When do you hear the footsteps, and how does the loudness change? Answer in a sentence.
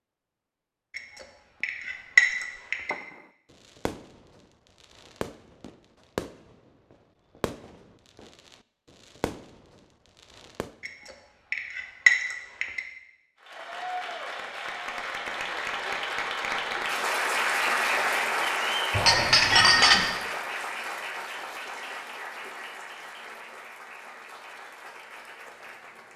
You can't hear the footsteps here.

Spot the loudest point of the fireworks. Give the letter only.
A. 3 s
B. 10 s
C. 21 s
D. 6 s
D.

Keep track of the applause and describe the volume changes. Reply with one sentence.
The loudness of the applause goes up, then down.